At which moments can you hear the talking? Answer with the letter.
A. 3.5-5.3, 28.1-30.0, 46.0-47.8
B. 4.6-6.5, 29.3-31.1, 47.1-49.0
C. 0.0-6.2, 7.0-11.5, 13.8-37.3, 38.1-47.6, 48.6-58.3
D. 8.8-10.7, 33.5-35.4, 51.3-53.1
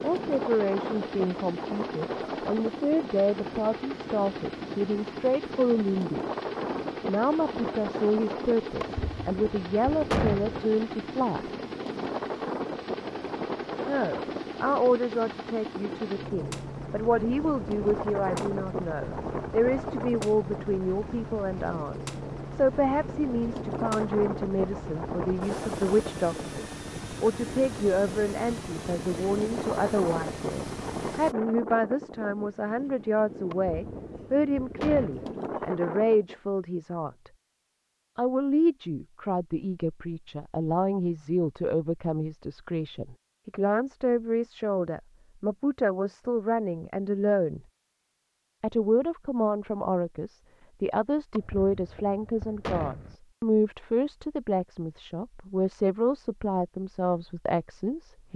C.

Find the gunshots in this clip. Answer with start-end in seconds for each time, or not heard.
8.8-10.7, 33.5-35.4, 51.3-53.1.